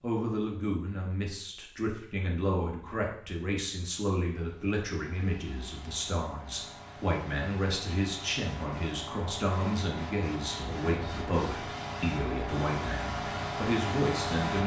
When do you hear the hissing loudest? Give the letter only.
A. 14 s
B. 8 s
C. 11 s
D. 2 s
A.